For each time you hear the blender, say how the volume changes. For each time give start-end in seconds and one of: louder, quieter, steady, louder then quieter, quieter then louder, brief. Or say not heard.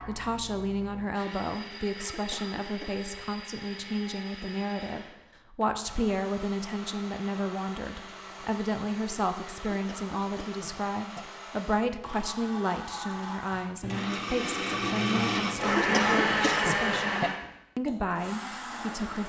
0.0-19.2 louder.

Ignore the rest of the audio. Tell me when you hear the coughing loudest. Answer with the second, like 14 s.
16 s.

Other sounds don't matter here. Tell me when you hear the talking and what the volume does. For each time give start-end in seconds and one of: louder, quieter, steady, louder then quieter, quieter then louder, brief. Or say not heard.
0.1-19.2 steady.